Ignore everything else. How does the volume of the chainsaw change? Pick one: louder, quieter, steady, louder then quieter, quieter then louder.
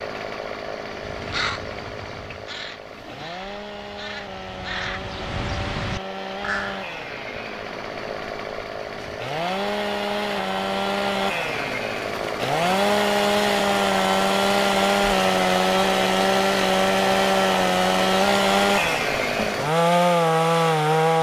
louder.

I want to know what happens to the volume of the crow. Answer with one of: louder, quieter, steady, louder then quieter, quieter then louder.
quieter then louder.